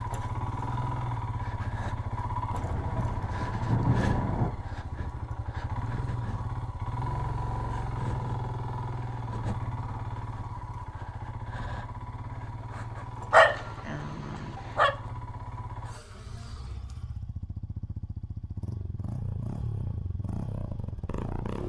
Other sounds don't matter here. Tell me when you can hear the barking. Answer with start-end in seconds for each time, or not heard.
13.3-14.9.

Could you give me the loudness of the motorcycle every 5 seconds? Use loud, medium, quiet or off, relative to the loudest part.
loud, loud, medium, medium, loud.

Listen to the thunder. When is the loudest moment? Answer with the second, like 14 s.
4 s.